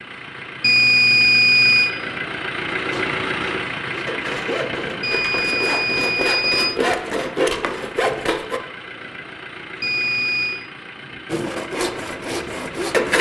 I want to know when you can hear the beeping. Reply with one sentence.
You can hear the beeping from 0.6 to 1.9 s, from 5.0 to 6.8 s and from 9.8 to 10.6 s.